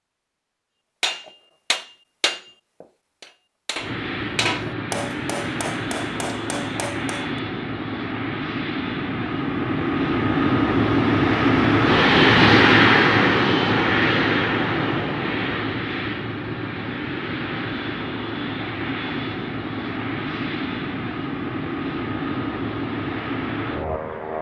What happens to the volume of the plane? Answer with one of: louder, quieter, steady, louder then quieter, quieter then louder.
louder then quieter.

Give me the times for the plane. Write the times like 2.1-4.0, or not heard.
3.8-24.3.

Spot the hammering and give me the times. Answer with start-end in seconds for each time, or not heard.
1.0-7.2.